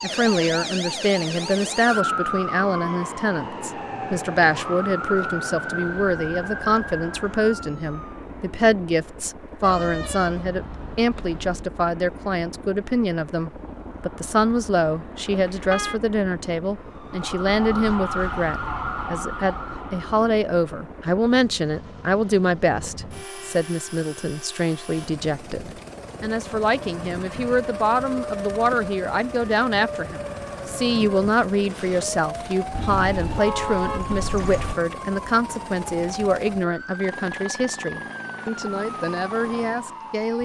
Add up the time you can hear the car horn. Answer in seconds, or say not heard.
5 s.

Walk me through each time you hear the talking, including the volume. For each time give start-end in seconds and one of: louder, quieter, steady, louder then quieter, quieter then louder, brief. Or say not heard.
0.0-40.3 steady.